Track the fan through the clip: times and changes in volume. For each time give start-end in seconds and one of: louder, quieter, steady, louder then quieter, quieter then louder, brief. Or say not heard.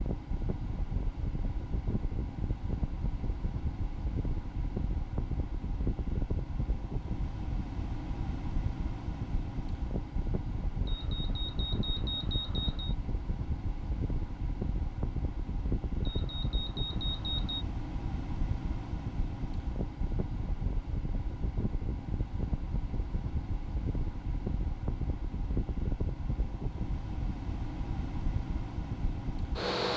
0.0-29.9 steady.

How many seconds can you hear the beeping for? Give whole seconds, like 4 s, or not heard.
4 s.